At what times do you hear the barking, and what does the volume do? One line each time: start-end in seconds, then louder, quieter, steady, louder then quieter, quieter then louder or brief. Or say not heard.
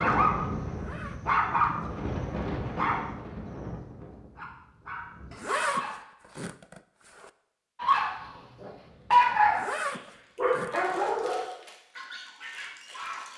0.0-5.9 quieter
7.8-9.6 brief
10.3-13.3 brief.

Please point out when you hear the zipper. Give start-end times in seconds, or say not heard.
0.7-1.4, 5.3-7.3, 9.4-11.5.